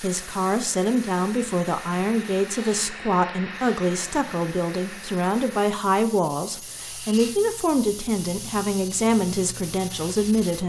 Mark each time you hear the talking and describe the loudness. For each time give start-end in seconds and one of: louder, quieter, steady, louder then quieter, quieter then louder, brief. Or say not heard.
0.0-10.6 steady.